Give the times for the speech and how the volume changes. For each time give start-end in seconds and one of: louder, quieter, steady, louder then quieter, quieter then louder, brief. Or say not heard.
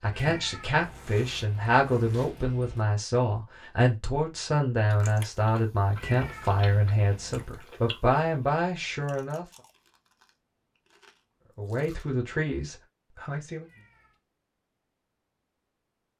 0.0-9.4 steady
11.6-13.7 brief.